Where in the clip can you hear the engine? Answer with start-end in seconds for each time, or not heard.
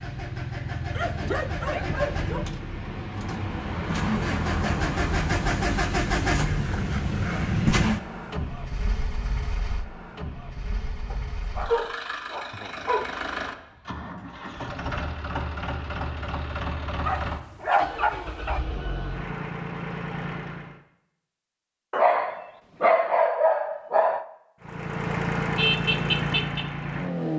0.0-20.8, 24.6-27.3.